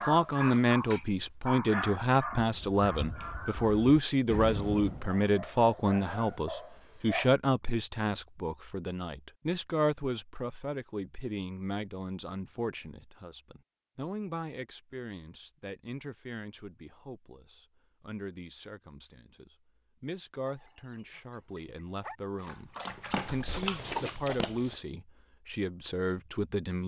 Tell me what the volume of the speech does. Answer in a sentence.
The loudness of the speech goes down, then up.